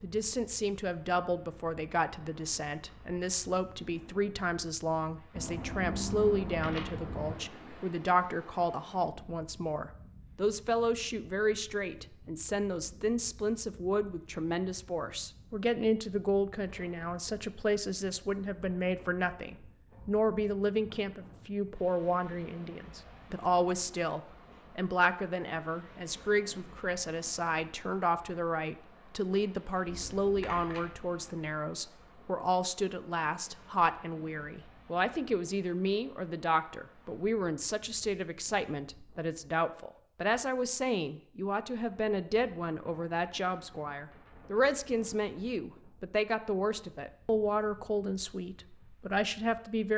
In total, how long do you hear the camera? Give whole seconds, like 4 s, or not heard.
3 s.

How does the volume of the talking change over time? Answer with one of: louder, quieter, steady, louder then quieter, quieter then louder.
steady.